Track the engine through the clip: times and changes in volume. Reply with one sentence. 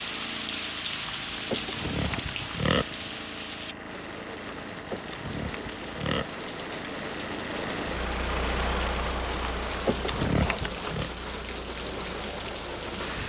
You can hear the engine from 0.0 to 13.2 s, getting louder then quieter.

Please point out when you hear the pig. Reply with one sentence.
You can hear the pig from 1.3 to 2.9 s, from 4.7 to 6.2 s and from 9.7 to 11.1 s.